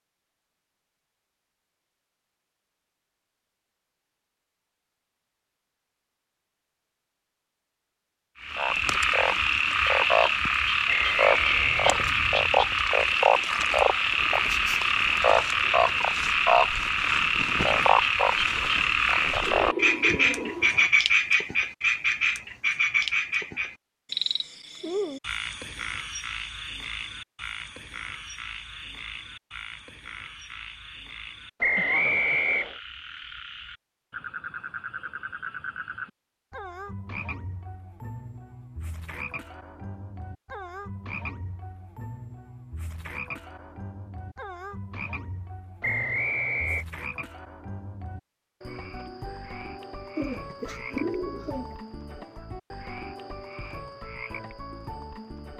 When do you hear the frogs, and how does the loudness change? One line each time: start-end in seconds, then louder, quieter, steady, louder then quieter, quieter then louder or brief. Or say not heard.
8.4-55.5 quieter.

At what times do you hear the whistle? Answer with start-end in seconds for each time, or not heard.
10.8-12.1, 31.6-32.8, 45.8-46.9.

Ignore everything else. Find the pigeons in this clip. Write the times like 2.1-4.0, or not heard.
14.2-16.1, 19.4-20.9, 50.1-51.8.